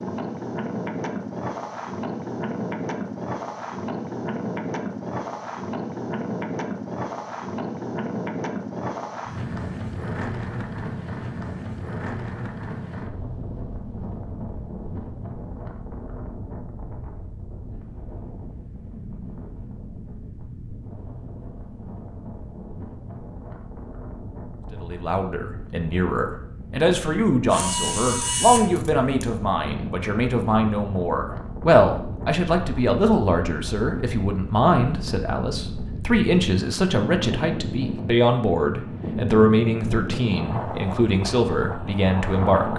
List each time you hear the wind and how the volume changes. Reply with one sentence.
You can hear the wind from 0.0 to 42.7 s, getting quieter then louder.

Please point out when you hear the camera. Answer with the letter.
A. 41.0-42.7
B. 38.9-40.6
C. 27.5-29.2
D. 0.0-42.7
C.